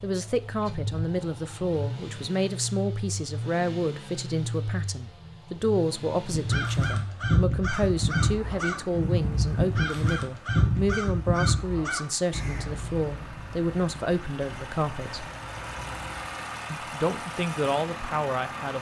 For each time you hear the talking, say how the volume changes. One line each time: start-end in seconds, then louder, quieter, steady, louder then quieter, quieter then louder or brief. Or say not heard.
0.0-15.2 steady
16.7-18.7 brief.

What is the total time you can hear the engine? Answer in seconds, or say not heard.
19 s.